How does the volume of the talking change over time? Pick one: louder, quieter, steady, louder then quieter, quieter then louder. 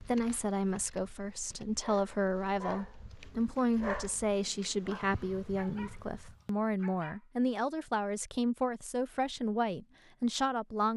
steady.